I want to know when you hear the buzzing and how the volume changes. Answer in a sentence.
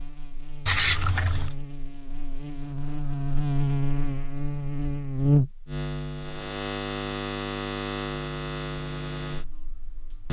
The buzzing can be heard from 0.0 to 10.2 s, getting louder then quieter.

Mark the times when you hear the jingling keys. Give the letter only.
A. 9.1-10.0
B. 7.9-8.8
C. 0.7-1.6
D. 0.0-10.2
C.